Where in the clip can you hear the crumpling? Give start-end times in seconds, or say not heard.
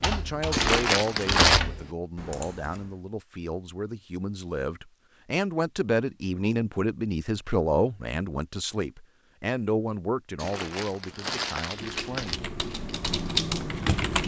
0.5-1.6, 10.3-12.4.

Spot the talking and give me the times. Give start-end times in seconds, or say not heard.
0.0-12.6.